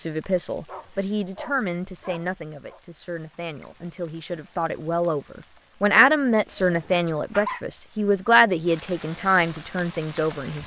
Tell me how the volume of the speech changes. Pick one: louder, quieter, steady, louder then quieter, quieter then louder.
quieter then louder.